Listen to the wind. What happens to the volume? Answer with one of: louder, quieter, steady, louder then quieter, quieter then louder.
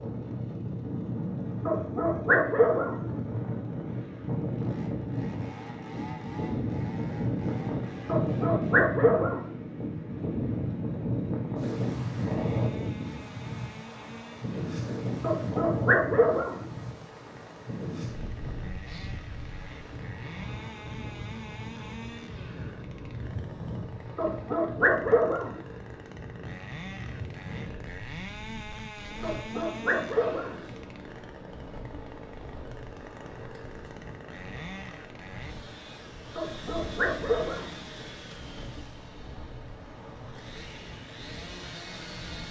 quieter.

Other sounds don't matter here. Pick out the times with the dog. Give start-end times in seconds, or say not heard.
1.6-3.0, 8.1-9.5, 15.2-16.6, 24.1-25.6, 29.2-30.6, 36.4-37.8.